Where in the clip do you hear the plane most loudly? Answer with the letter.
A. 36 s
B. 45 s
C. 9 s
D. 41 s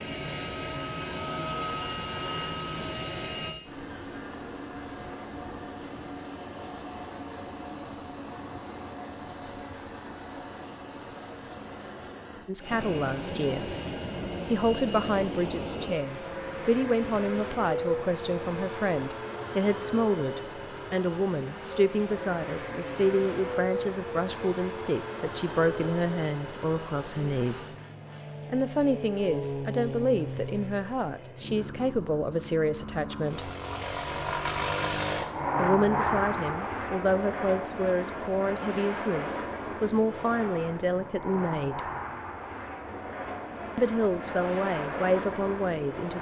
A.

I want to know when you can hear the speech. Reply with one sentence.
The speech can be heard from 12.4 to 13.8 s, from 14.5 to 27.7 s, from 28.5 to 33.5 s, from 35.5 to 41.8 s and from 43.8 to 46.1 s.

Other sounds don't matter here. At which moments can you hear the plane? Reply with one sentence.
The plane can be heard from 0.0 to 46.1 s.